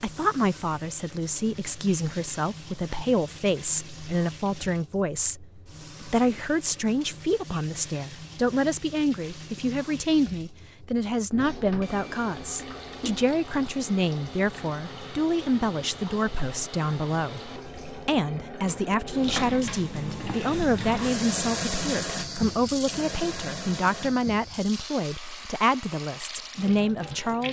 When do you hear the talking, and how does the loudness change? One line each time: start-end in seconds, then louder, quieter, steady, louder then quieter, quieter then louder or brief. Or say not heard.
0.0-27.4 steady.